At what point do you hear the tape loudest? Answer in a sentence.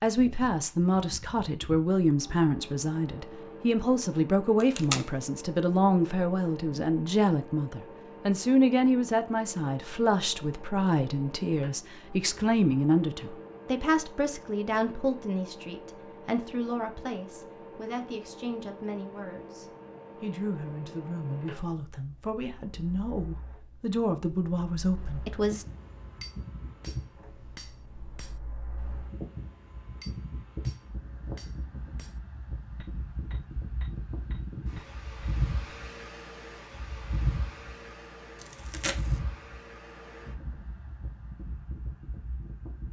The volume of the tape peaks at 5 seconds.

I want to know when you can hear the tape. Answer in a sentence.
The tape can be heard from 4.6 to 5.0 s and from 38.4 to 39.2 s.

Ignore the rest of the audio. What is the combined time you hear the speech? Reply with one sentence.
The speech can be heard for 26 seconds in total.